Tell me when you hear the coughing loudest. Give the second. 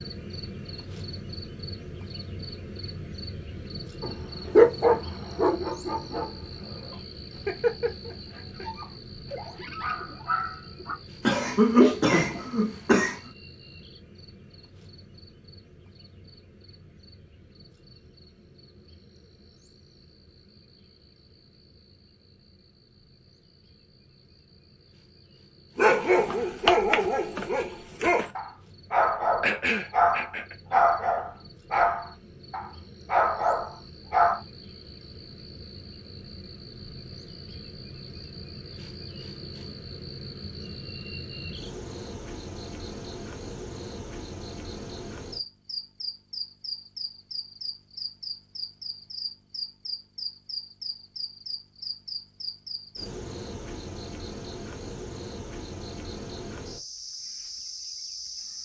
12 s.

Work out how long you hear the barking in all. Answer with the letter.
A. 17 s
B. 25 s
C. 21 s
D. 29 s
A.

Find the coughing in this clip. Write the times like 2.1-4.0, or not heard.
11.2-13.2, 29.4-30.6.